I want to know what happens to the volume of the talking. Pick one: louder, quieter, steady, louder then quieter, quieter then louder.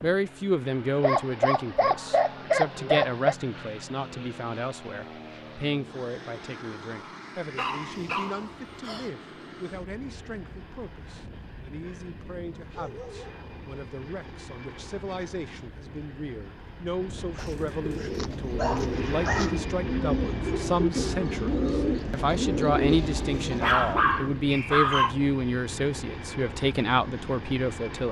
quieter then louder.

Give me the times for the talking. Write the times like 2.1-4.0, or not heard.
0.0-28.0.